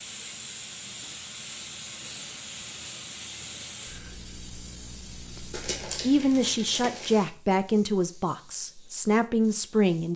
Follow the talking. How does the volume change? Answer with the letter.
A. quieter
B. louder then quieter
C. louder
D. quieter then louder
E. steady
D.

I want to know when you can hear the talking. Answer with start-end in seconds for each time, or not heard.
5.3-10.1.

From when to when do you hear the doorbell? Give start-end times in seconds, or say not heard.
not heard.